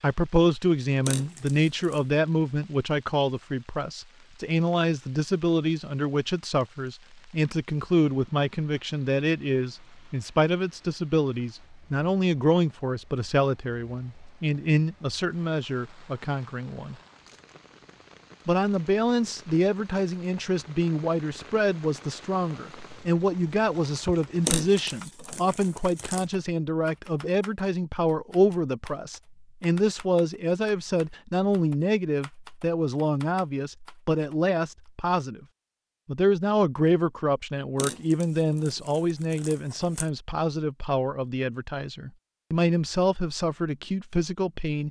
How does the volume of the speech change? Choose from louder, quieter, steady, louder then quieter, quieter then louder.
steady.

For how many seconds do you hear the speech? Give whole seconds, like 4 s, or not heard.
43 s.